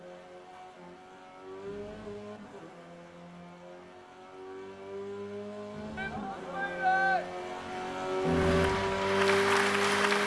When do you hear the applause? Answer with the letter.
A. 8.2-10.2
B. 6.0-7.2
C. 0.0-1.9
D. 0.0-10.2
A.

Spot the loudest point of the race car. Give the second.
9 s.